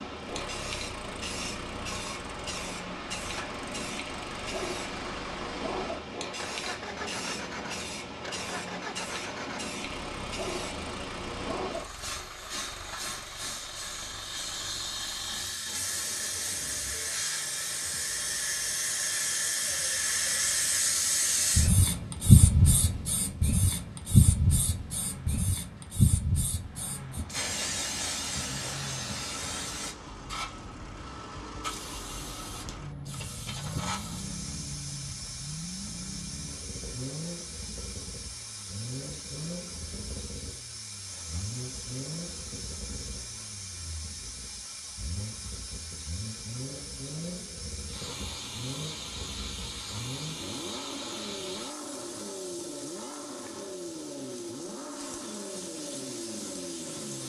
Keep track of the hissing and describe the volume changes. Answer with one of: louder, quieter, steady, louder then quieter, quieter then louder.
louder then quieter.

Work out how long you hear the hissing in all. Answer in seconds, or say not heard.
57 s.